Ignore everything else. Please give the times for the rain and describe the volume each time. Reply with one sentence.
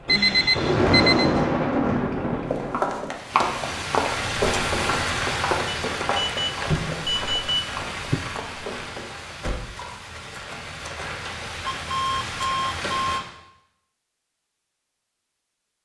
You can hear the rain from 0.0 to 13.2 s, getting quieter.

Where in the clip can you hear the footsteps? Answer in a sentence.
The footsteps can be heard from 2.5 to 9.1 s.